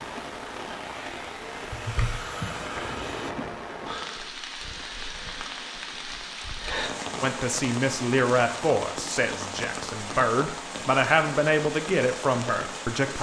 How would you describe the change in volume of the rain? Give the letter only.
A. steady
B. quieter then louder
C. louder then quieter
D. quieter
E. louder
A.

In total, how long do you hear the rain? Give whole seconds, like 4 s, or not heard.
13 s.